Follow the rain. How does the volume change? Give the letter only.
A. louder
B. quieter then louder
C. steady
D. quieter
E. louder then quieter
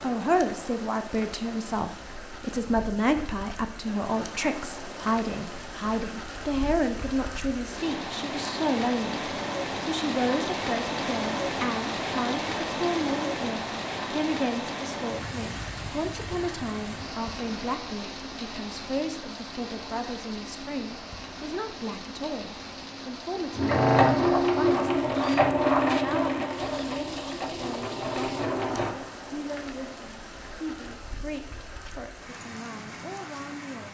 E.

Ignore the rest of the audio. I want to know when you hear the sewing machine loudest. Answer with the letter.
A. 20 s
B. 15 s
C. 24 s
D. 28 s
C.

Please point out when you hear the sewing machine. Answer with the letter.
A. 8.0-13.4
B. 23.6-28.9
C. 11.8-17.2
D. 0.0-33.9
B.